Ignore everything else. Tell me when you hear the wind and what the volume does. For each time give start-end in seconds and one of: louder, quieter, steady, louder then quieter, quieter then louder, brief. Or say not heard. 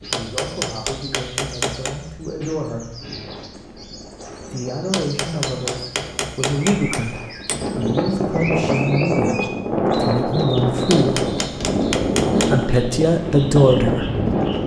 3.1-14.6 louder.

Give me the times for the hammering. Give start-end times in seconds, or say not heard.
0.1-2.0, 4.9-7.7, 10.8-12.6.